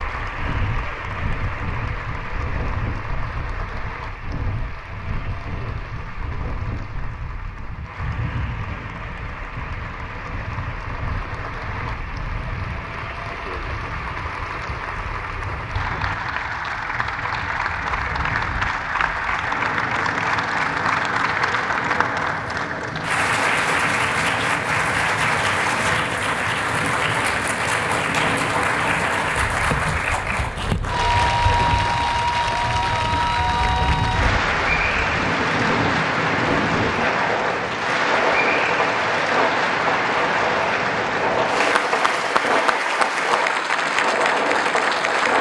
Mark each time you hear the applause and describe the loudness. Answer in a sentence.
The applause can be heard from 0.0 to 45.3 s, getting louder.